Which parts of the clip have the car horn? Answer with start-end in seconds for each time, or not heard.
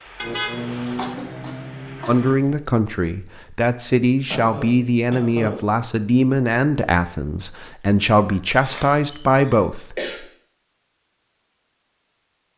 0.1-2.6.